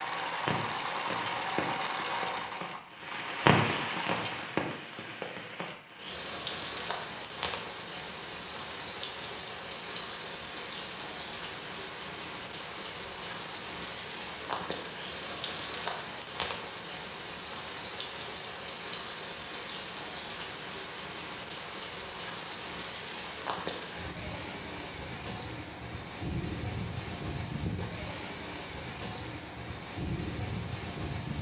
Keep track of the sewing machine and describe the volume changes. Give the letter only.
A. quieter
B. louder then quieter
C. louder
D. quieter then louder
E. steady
A.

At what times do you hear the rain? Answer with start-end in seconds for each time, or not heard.
0.0-31.3.